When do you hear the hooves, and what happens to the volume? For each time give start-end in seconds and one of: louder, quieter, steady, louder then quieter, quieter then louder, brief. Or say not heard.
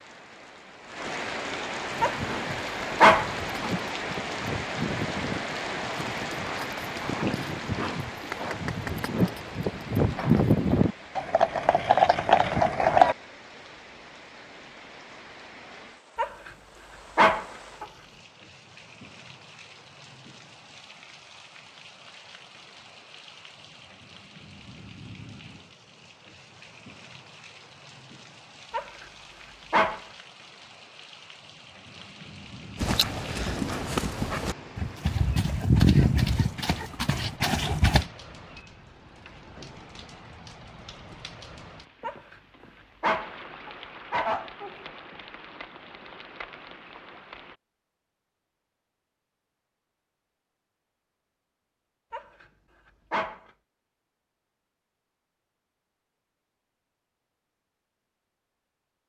1.9-13.2 louder
32.8-38.0 louder then quieter.